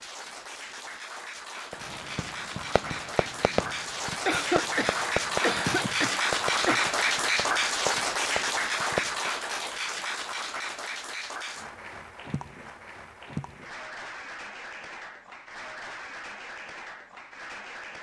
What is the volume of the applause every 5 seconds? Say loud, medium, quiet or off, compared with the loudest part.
medium, loud, medium, quiet.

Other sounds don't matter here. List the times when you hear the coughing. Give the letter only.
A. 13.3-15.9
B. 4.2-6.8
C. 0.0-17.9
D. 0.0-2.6
B.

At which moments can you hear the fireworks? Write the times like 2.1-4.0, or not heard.
1.7-9.3.